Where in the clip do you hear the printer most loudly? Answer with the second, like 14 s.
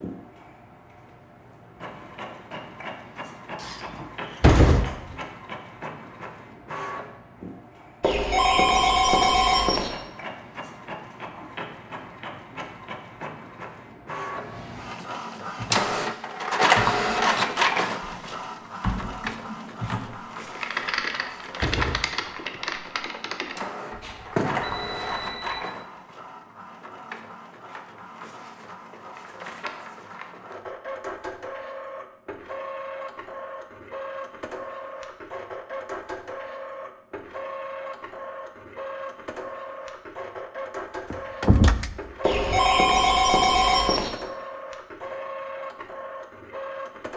17 s.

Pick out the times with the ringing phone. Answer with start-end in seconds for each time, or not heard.
8.0-9.9, 23.9-25.6, 42.2-44.1.